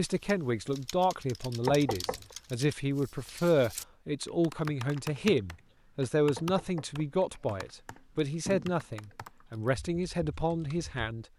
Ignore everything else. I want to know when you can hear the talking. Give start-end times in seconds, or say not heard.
0.0-11.2.